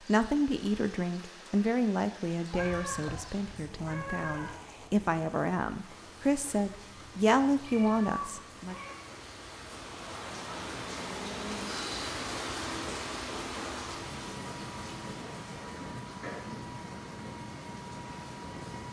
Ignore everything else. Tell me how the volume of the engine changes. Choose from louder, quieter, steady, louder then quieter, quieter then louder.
steady.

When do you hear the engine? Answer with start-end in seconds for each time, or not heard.
9.7-18.8.